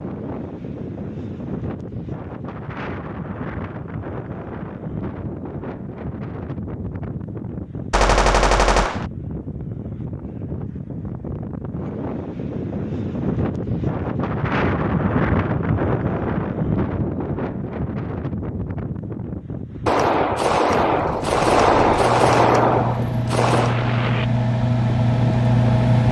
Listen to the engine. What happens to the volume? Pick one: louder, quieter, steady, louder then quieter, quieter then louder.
louder.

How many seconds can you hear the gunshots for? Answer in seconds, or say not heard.
5 s.